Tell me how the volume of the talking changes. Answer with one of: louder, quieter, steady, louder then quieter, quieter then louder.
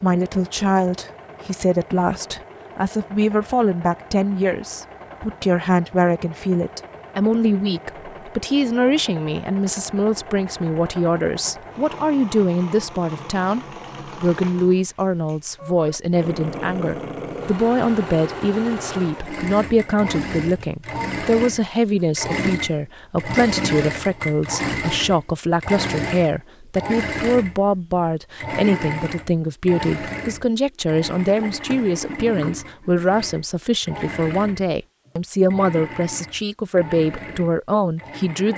steady.